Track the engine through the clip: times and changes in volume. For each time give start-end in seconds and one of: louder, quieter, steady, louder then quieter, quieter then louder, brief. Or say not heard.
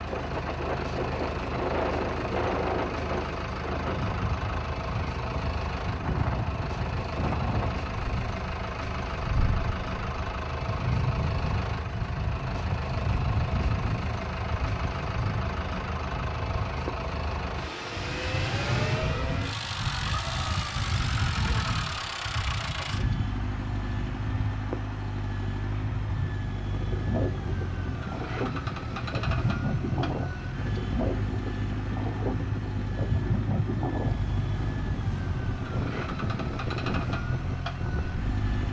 0.0-38.6 steady.